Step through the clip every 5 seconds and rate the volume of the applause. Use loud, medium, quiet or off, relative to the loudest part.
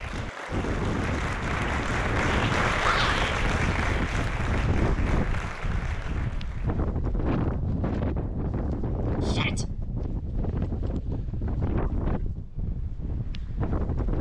loud, medium, off.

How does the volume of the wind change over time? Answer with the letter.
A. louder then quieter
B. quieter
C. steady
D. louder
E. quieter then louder
C.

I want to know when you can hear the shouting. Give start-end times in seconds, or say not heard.
2.8-3.4, 9.2-9.7.